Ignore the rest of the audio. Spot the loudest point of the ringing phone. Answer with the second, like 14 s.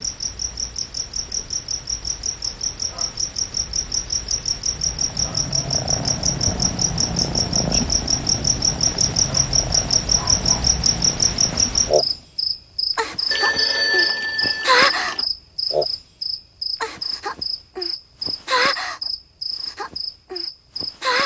14 s.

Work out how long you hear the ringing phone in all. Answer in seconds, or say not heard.
2 s.